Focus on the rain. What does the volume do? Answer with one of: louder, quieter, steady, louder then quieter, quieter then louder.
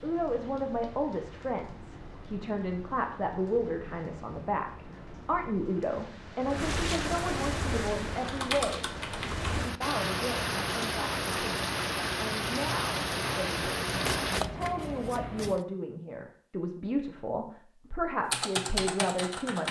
louder.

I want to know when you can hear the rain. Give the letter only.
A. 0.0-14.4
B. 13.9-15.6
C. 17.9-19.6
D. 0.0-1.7
A.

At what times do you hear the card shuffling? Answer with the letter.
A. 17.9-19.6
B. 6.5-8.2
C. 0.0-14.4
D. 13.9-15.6
D.